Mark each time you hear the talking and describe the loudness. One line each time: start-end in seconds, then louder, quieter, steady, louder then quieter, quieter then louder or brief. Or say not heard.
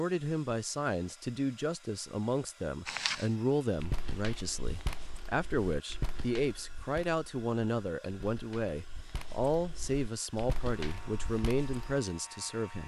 0.0-12.8 steady.